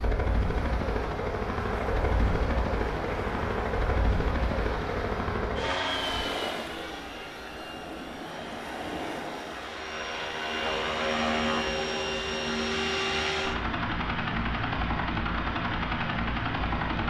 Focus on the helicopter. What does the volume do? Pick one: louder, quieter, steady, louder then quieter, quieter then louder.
quieter then louder.